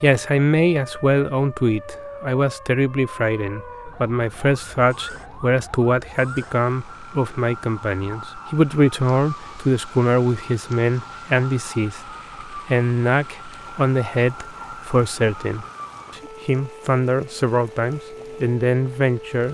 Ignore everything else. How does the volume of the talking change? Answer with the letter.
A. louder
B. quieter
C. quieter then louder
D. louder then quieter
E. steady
E.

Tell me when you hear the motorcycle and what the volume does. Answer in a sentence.
The motorcycle can't be heard in this clip.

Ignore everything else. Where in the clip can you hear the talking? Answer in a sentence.
The talking can be heard from 0.0 to 19.4 s.